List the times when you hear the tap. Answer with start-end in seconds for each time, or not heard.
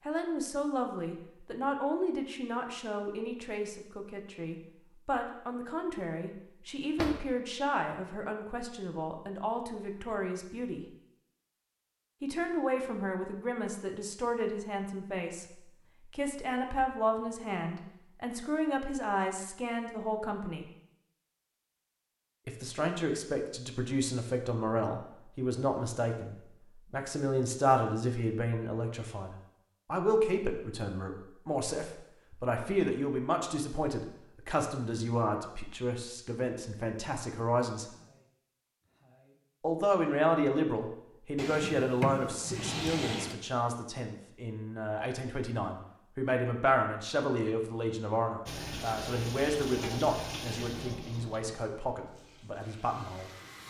48.5-53.6.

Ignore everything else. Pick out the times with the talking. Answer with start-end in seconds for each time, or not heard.
0.0-10.8, 12.2-20.6, 22.4-37.9, 39.6-53.3.